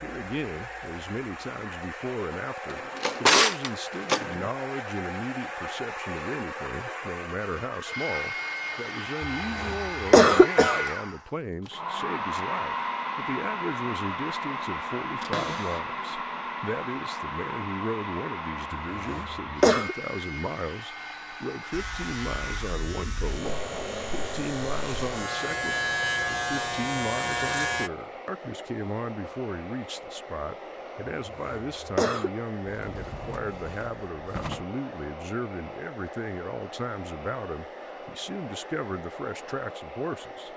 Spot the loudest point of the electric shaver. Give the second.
26 s.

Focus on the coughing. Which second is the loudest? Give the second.
10 s.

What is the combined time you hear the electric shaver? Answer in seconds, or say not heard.
6 s.